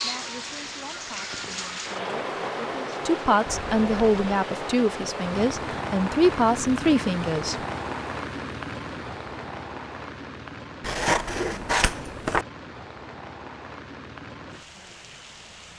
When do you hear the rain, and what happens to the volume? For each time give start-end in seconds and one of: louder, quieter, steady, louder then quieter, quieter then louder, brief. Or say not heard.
0.0-15.7 quieter.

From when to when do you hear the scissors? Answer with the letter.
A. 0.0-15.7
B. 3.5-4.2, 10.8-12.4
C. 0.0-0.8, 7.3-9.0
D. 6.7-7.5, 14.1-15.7
B.